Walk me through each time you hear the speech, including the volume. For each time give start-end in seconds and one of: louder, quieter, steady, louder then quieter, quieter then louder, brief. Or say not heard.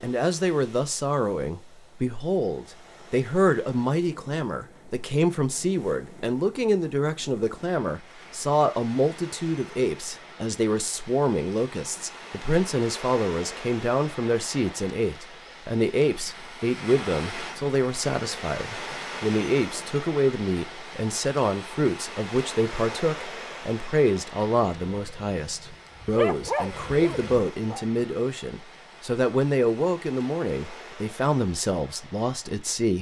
0.0-32.9 steady.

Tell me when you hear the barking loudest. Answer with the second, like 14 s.
26 s.